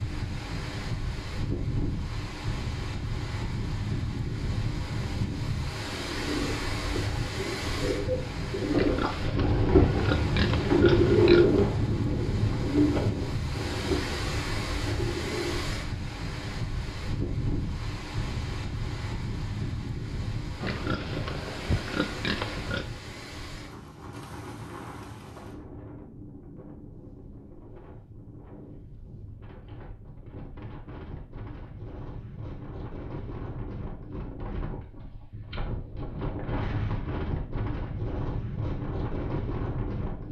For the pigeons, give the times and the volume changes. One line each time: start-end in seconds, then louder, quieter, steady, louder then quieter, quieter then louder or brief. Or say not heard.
6.0-15.7 louder then quieter.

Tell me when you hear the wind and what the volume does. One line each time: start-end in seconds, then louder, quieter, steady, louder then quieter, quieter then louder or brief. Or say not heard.
0.0-40.2 quieter then louder.